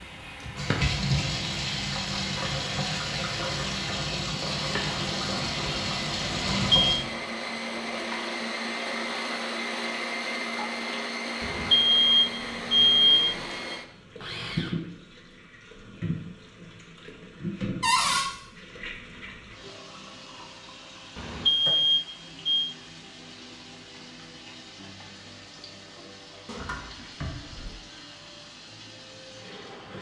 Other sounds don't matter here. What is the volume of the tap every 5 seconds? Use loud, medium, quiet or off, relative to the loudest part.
loud, loud, medium, medium, quiet, quiet.